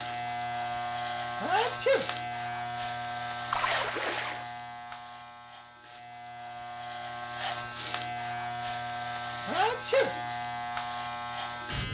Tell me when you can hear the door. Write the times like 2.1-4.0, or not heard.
not heard.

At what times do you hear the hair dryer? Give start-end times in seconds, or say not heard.
not heard.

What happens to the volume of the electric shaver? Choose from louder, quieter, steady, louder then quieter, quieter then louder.
quieter then louder.